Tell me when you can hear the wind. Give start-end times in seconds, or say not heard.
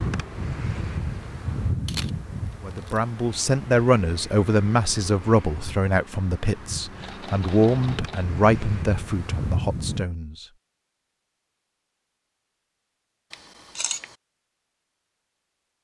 0.0-10.1.